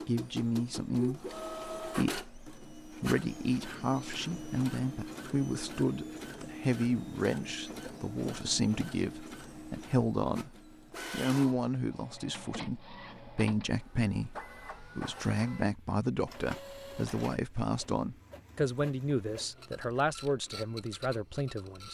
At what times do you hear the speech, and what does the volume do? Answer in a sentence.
You can hear the speech from 0.1 to 21.8 s, at a steady volume.